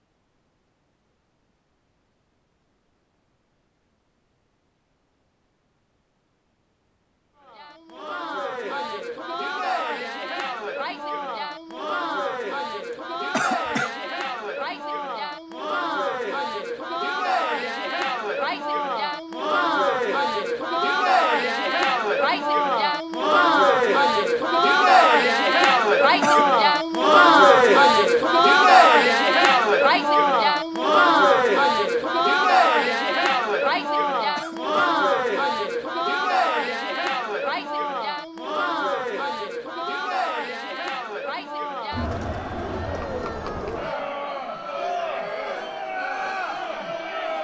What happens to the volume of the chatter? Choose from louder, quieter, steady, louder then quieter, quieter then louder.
louder then quieter.